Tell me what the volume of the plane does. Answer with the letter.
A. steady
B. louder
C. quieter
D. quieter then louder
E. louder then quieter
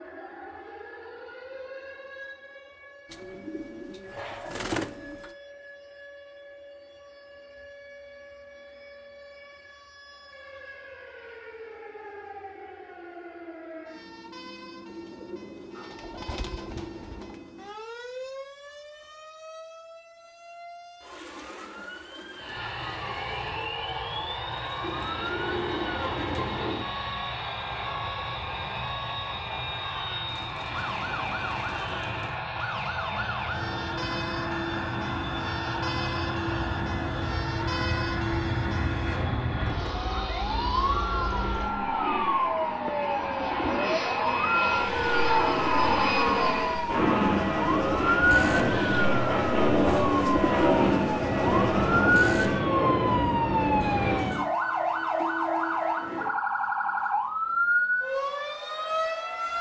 B.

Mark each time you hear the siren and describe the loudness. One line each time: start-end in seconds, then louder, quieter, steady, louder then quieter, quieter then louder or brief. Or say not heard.
0.0-59.5 louder.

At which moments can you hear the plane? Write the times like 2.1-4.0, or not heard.
22.4-54.4.